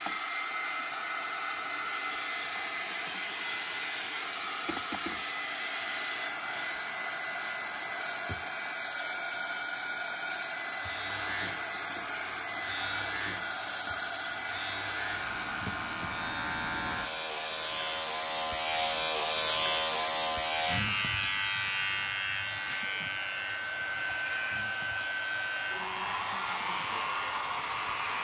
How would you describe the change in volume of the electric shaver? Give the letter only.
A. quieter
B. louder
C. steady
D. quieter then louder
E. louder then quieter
E.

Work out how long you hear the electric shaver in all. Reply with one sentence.
The electric shaver can be heard for 17 seconds in total.